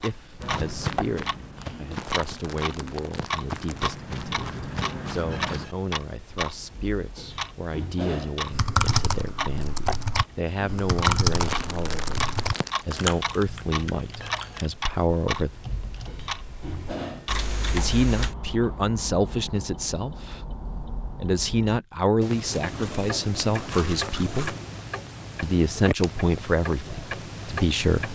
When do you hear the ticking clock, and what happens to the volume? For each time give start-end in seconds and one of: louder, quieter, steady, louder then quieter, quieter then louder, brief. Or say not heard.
0.0-28.1 steady.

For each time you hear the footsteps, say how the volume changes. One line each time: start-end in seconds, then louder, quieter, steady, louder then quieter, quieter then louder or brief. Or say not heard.
0.4-5.7 quieter then louder.